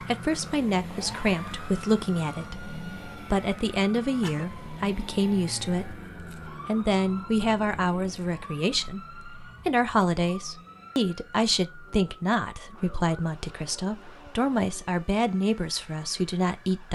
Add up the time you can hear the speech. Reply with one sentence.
You can hear the speech for 17 seconds altogether.